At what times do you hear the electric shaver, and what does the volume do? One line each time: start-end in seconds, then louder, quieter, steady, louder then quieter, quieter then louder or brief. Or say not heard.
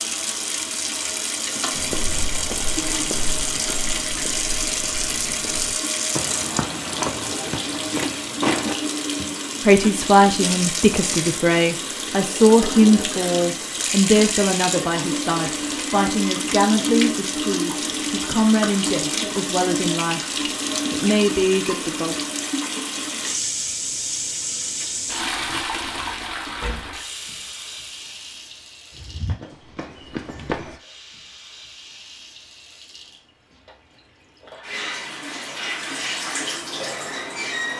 not heard.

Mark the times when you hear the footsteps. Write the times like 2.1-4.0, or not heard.
1.7-8.8, 28.9-30.8.